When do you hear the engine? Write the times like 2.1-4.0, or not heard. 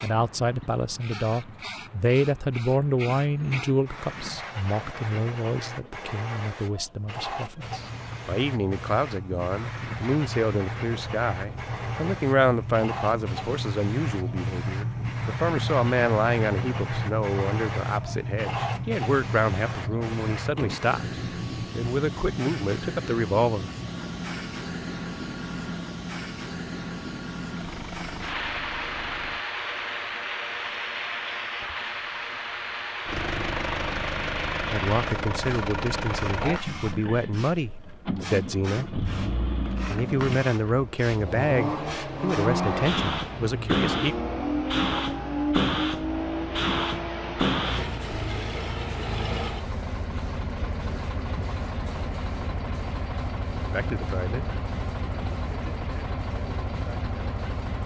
7.5-29.4, 33.0-57.8.